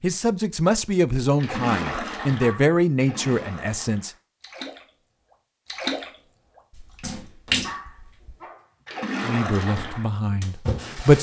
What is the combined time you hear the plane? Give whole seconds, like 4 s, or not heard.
not heard.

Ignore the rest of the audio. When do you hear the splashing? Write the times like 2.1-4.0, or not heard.
1.4-4.8, 5.7-6.1, 6.8-11.1.